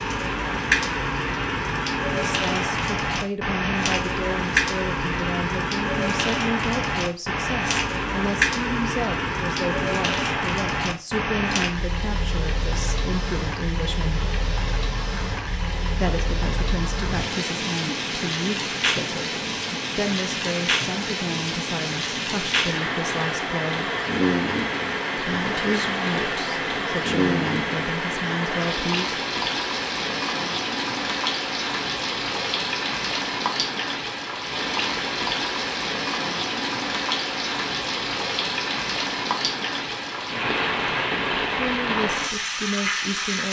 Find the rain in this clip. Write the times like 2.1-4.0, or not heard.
0.0-43.4.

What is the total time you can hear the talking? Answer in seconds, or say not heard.
26 s.